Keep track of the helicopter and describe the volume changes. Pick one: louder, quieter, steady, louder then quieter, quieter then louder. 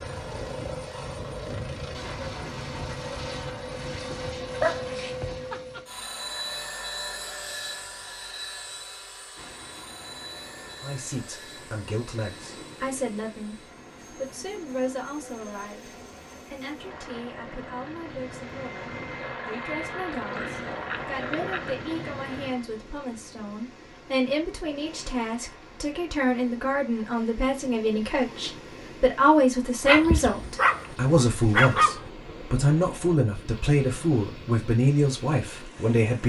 quieter then louder.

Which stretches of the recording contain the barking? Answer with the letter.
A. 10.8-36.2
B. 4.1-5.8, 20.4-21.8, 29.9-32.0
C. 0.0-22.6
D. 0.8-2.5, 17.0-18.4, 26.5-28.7
B.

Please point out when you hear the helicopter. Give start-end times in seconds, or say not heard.
0.0-22.6.